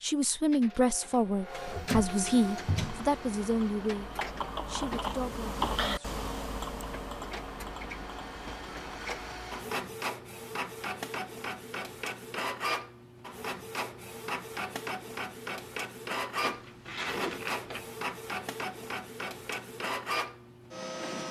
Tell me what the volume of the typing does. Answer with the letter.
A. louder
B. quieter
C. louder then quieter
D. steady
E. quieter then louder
C.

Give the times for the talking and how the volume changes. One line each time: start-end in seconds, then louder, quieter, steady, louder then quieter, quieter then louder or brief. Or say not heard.
0.0-6.2 quieter.